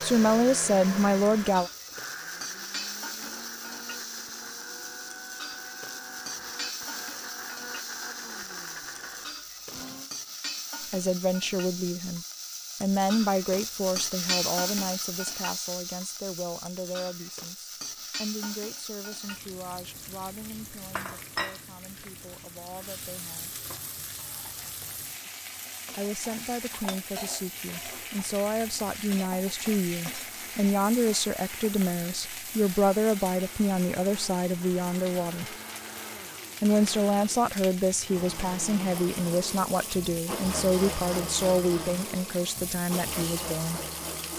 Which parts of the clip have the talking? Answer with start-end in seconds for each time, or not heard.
0.0-1.7, 10.9-23.6, 25.9-35.5, 36.6-43.8.